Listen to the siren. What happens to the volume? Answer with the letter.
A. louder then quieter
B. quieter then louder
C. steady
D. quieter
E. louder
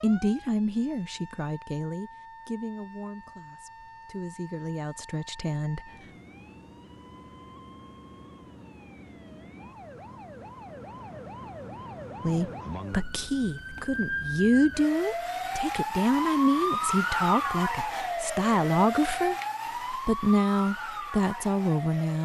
E.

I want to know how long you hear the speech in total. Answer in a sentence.
The speech can be heard for 16 seconds in total.